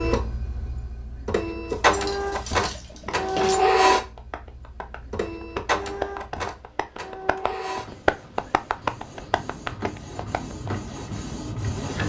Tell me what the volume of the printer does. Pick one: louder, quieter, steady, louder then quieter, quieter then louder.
quieter.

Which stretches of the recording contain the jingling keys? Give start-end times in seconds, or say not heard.
1.6-3.6.